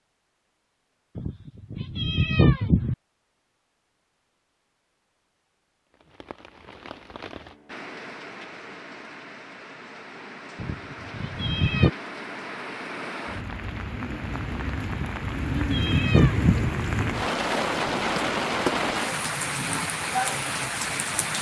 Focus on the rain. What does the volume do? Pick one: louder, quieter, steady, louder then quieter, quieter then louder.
louder.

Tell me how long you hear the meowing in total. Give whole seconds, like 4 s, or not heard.
5 s.